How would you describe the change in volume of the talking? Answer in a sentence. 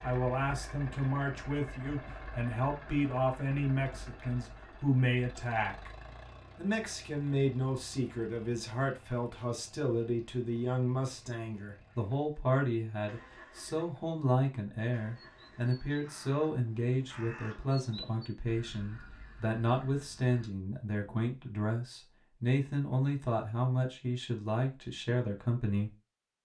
The volume of the talking stays about the same.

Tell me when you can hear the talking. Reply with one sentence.
You can hear the talking from 0.0 to 5.9 s and from 6.5 to 25.9 s.